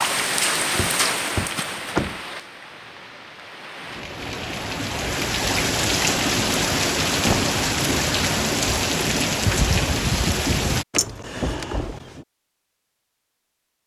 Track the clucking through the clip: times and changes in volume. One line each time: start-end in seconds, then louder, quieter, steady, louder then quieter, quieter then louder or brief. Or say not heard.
not heard.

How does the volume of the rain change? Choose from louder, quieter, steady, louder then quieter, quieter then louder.
quieter then louder.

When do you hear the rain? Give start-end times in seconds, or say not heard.
0.0-10.8.